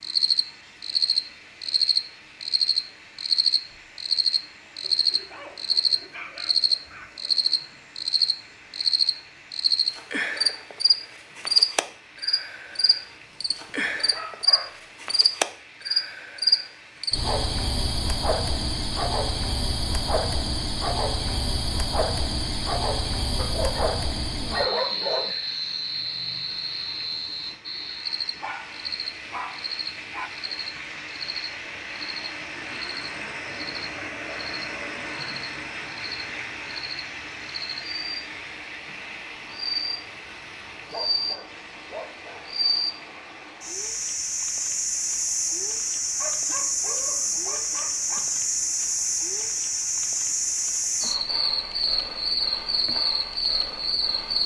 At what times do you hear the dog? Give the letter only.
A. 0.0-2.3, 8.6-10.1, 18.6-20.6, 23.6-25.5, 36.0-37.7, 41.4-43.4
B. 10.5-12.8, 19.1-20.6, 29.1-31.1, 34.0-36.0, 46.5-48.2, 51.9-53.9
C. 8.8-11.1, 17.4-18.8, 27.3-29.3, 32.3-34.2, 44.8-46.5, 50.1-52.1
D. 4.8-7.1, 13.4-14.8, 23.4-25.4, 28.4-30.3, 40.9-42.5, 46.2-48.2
D.